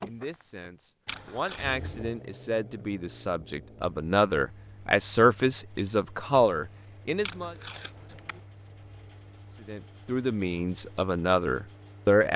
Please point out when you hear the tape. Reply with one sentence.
The tape can be heard from 1.1 to 1.8 s and from 7.2 to 8.4 s.